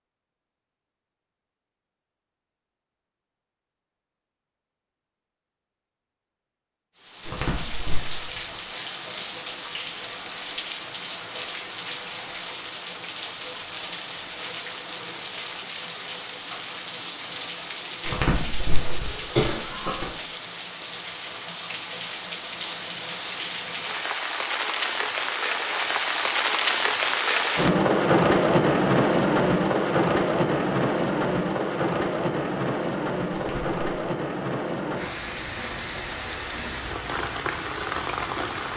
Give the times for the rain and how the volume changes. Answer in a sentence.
You can hear the rain from 7.0 to 38.7 s, getting louder then quieter.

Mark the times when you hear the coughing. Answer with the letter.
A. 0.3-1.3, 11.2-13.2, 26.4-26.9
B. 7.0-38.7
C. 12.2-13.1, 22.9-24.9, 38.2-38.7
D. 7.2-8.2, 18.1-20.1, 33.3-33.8
D.